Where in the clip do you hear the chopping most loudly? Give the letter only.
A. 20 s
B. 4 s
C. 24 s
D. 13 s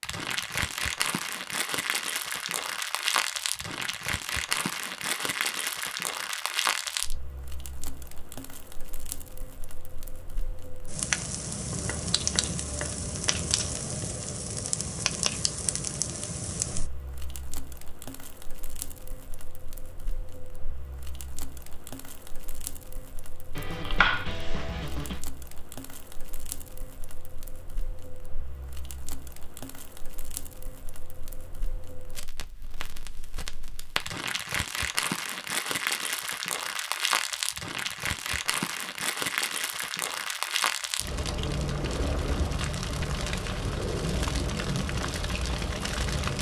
C.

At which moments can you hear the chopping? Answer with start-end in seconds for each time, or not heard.
11.8-13.7, 23.6-25.2.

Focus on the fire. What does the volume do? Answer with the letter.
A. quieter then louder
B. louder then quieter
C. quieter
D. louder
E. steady
A.